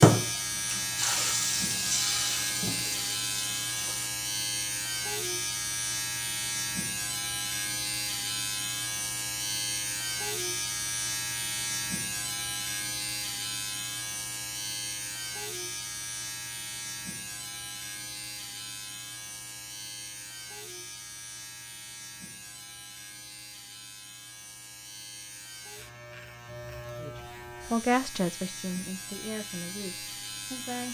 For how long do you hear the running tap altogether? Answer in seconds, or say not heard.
4 s.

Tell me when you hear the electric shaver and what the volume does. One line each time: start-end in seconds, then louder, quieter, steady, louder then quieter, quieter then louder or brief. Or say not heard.
0.0-30.8 quieter.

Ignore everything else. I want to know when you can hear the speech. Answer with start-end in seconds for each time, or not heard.
26.9-30.8.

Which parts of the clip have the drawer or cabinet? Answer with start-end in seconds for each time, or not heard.
not heard.